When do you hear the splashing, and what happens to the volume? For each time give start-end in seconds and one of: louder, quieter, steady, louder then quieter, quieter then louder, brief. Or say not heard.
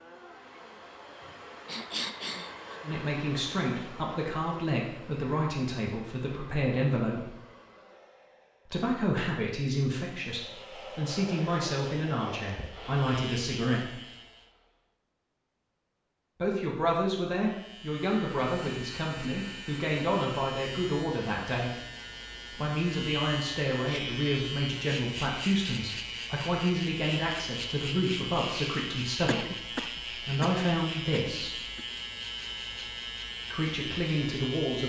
not heard.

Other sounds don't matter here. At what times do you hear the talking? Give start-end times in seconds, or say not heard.
2.8-7.3, 8.7-13.9, 16.4-21.7, 22.5-31.6, 33.5-34.8.